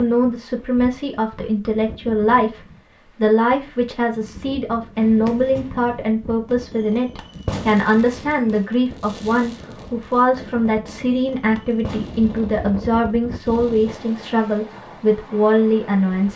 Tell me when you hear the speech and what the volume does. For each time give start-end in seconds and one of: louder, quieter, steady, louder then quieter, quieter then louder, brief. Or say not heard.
0.0-16.3 steady.